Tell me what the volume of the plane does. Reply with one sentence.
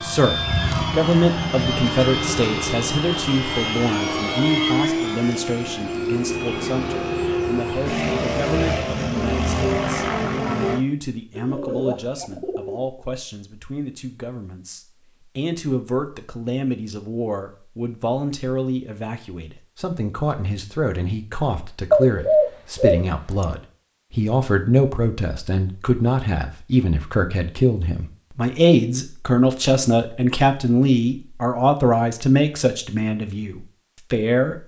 The volume of the plane stays about the same.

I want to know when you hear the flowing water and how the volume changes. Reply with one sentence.
You can't hear the flowing water here.